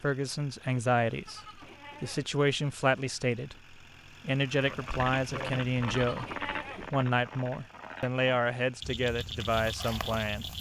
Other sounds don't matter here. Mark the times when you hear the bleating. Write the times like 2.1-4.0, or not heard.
1.2-2.3, 5.8-6.9.